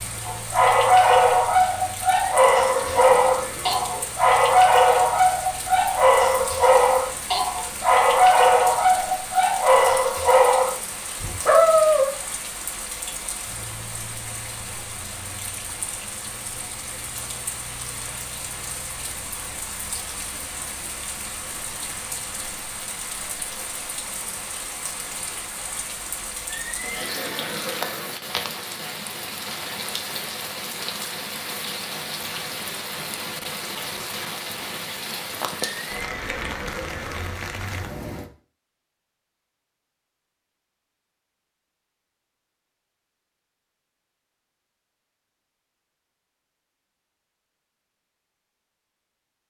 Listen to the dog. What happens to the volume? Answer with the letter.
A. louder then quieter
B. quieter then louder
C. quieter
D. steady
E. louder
D.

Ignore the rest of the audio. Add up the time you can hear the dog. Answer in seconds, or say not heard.
12 s.